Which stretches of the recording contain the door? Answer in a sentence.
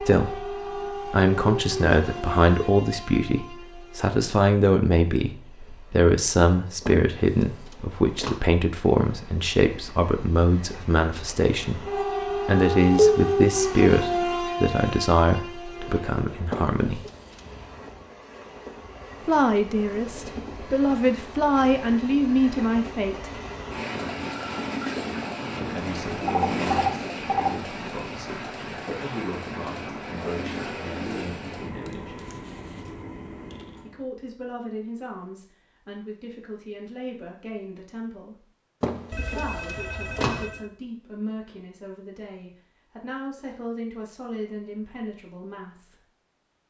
The door can be heard from 6.8 to 8.4 s, from 16.5 to 17.9 s and from 38.8 to 40.5 s.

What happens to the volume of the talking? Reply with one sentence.
The loudness of the talking goes down.